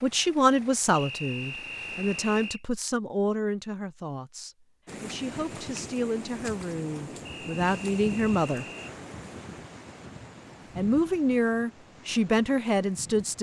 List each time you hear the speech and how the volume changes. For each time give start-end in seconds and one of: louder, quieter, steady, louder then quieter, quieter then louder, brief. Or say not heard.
0.0-8.7 quieter then louder
10.8-13.3 brief.